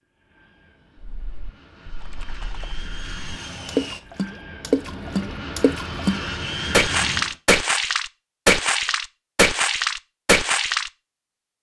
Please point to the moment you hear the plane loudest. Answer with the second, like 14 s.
7 s.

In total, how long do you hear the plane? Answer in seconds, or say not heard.
7 s.